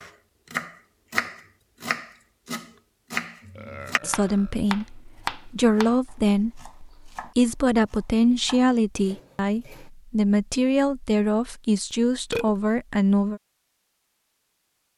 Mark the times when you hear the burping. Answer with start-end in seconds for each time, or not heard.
3.5-4.5, 11.9-12.6.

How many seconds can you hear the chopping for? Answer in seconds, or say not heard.
10 s.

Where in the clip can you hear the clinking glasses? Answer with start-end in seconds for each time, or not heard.
not heard.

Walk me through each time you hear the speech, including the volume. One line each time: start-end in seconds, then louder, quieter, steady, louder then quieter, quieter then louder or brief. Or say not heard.
4.0-13.4 steady.